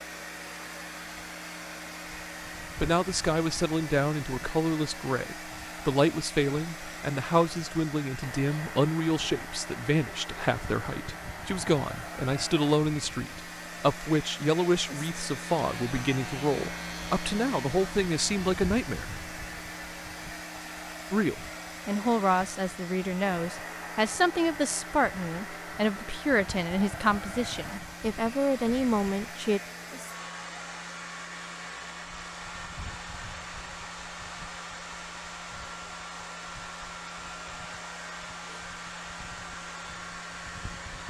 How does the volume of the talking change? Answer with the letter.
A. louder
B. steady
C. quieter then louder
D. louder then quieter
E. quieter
B.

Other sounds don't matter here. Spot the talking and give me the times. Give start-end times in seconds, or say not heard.
2.8-19.2, 21.1-29.6.